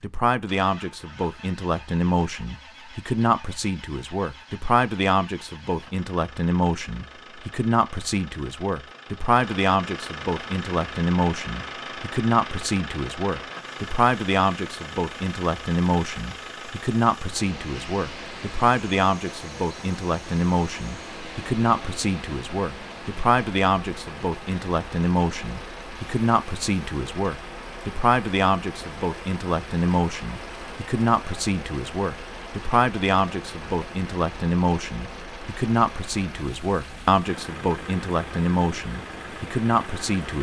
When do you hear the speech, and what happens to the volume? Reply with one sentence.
You can hear the speech from 0.0 to 40.3 s, at a steady volume.